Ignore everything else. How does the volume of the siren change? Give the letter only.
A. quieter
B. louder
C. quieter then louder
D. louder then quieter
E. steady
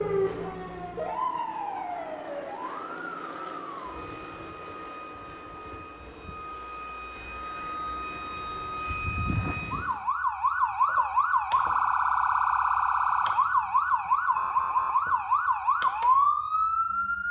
C.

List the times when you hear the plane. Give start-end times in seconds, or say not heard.
0.0-9.9.